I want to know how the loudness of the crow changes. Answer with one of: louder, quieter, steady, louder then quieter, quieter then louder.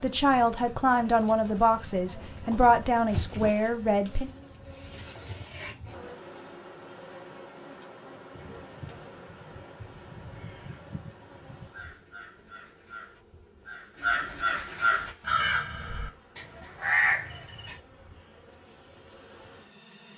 louder.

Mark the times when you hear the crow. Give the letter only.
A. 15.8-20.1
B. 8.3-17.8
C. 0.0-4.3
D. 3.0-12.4
B.